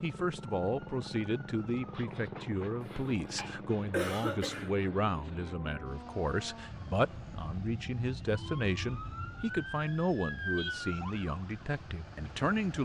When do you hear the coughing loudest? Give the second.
4 s.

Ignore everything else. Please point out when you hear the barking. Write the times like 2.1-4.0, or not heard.
not heard.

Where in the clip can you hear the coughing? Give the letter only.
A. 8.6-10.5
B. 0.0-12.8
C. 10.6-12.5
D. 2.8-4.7
D.